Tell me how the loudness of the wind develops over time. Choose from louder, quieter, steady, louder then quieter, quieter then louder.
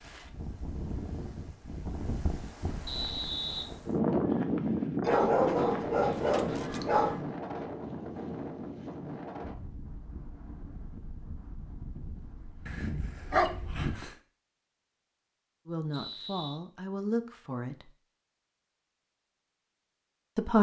louder then quieter.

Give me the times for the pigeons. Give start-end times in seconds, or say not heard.
not heard.